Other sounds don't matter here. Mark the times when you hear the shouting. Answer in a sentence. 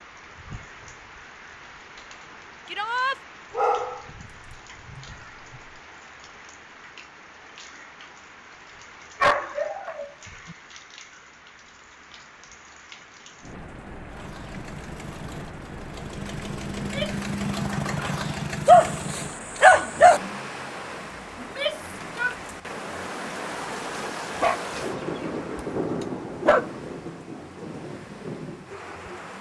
You can hear the shouting from 2.6 to 3.2 s, from 16.8 to 17.2 s and from 21.4 to 22.4 s.